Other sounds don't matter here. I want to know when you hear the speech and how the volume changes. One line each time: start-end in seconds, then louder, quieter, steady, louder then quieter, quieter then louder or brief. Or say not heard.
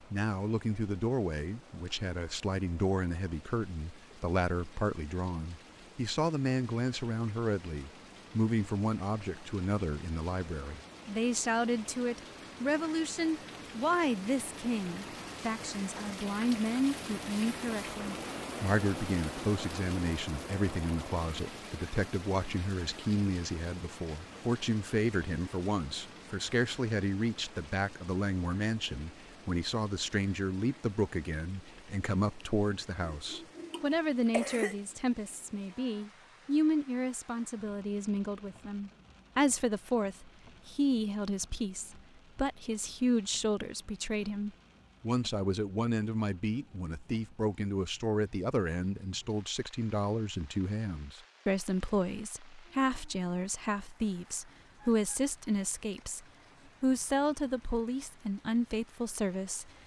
0.1-59.7 steady.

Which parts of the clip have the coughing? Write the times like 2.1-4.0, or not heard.
33.1-34.8.